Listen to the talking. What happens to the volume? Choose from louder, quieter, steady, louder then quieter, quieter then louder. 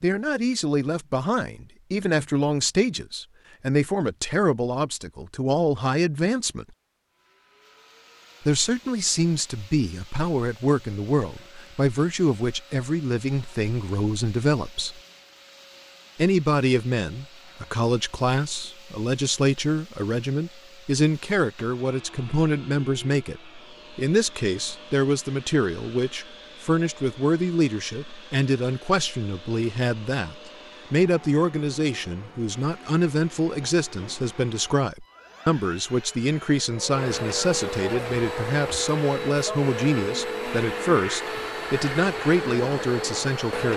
steady.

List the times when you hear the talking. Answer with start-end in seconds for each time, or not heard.
0.0-6.7, 8.4-15.0, 16.1-43.7.